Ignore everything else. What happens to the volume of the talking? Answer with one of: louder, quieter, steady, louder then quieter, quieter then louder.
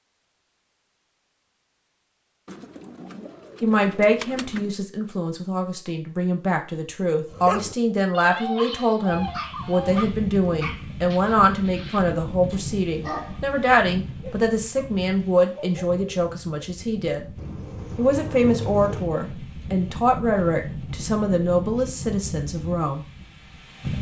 steady.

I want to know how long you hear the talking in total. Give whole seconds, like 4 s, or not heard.
19 s.